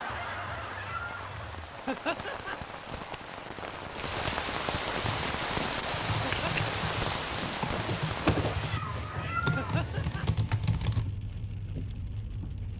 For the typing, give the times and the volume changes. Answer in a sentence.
The typing can be heard from 5.0 to 11.1 s, getting louder.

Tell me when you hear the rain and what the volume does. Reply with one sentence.
The rain can be heard from 0.0 to 12.7 s, getting louder then quieter.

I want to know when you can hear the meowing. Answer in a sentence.
The meowing can be heard from 0.1 to 1.7 s and from 8.5 to 9.9 s.